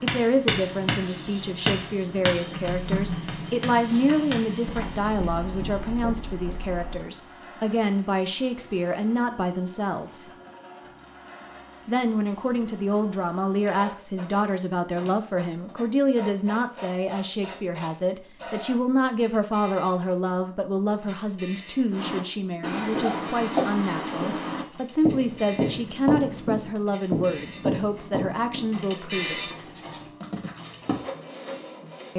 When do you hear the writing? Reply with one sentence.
You can hear the writing from 0.0 to 7.0 s and from 21.9 to 30.9 s.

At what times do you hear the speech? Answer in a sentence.
You can hear the speech from 0.0 to 10.3 s and from 11.8 to 29.5 s.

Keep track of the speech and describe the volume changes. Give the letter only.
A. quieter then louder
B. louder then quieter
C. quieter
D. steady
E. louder
D.